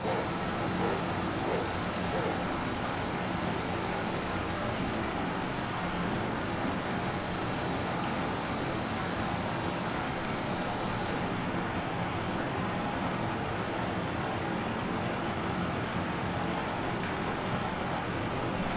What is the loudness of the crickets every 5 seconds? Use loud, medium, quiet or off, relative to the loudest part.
loud, loud, medium, quiet.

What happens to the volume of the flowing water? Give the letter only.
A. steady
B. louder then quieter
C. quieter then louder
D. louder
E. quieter
A.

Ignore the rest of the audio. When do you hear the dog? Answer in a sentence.
The dog can be heard from 0.0 to 2.4 s.